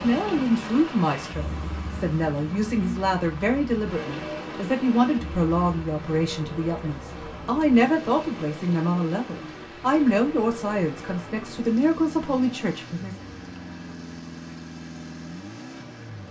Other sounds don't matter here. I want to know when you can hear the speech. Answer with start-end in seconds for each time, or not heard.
0.0-13.2.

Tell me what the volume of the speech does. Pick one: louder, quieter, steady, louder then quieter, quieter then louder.
steady.